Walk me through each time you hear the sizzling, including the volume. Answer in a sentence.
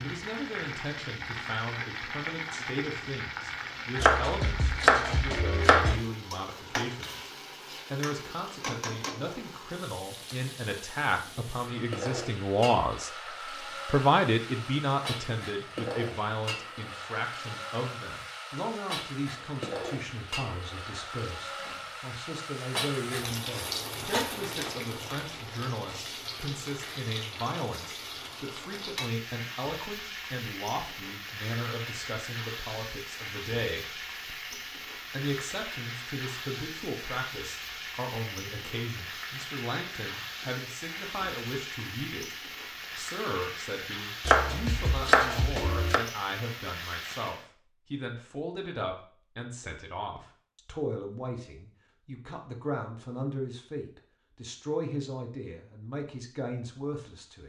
The sizzling can be heard from 0.0 to 47.5 s, at a steady volume.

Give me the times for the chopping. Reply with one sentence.
The chopping can be heard from 4.0 to 6.0 s and from 44.2 to 46.0 s.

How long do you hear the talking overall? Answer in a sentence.
You can hear the talking for 56 seconds altogether.